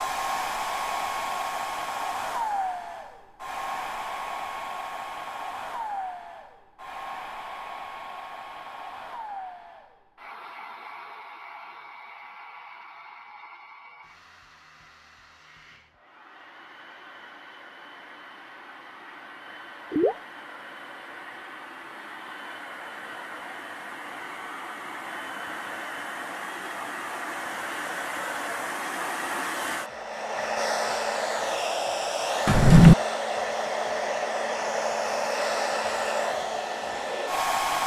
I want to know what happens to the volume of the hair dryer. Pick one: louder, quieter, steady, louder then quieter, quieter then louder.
quieter then louder.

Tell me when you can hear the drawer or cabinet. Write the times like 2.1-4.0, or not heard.
32.5-33.0.